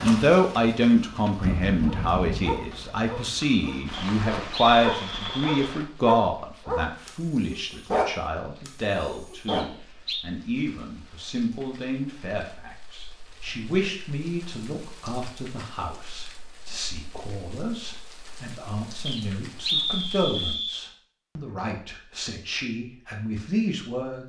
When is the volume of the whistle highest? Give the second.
20 s.